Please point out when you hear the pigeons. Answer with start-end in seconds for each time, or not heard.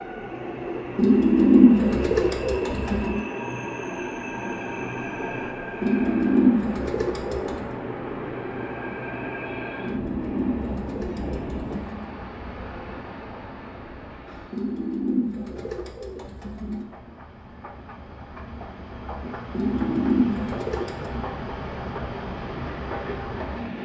0.9-3.2, 5.8-7.7, 9.8-12.1, 14.5-16.9, 19.5-21.1.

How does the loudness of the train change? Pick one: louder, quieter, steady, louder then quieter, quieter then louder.
quieter then louder.